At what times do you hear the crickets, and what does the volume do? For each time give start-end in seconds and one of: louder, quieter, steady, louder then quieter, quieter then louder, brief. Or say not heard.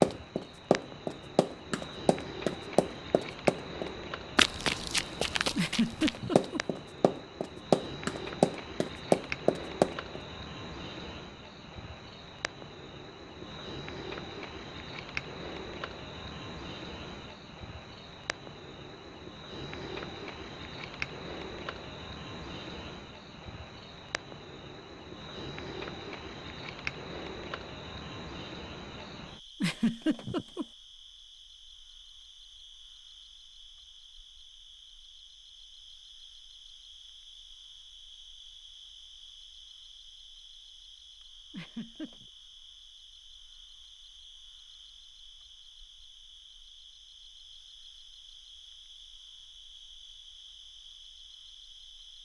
0.0-52.1 quieter.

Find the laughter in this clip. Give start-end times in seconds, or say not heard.
5.5-6.6, 29.6-30.6, 41.5-42.2.